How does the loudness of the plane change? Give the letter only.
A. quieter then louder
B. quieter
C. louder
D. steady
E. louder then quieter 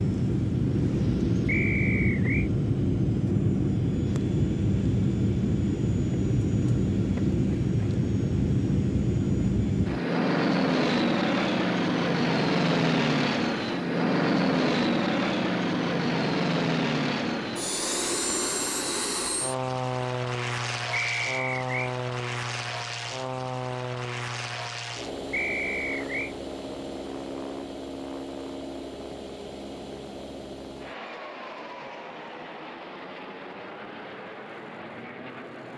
B.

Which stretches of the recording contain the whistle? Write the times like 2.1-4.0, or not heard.
1.4-2.5, 20.9-21.9, 25.3-26.4.